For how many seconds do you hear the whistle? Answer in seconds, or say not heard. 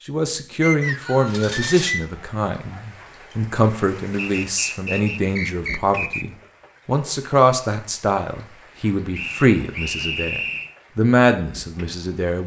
5 s.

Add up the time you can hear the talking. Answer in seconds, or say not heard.
12 s.